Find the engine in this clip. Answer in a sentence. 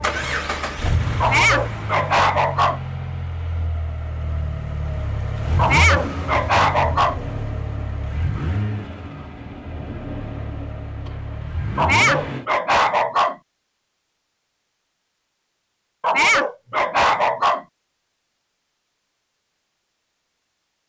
The engine can be heard from 0.0 to 12.4 s.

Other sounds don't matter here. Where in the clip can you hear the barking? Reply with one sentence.
You can hear the barking from 1.2 to 2.8 s, from 5.5 to 7.2 s, from 11.8 to 13.3 s and from 16.0 to 17.6 s.